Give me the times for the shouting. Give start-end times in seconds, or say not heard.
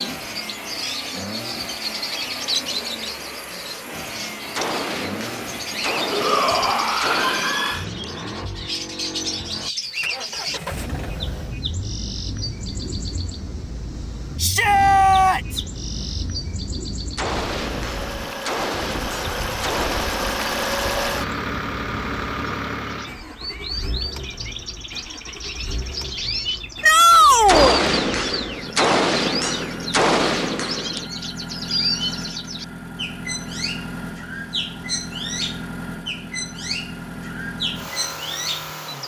6.1-7.8, 14.4-15.6, 26.8-27.8.